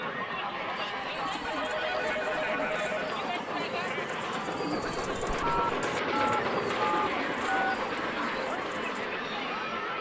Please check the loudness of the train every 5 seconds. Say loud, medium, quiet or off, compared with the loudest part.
medium, loud.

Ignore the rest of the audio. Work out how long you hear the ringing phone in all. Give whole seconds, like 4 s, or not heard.
4 s.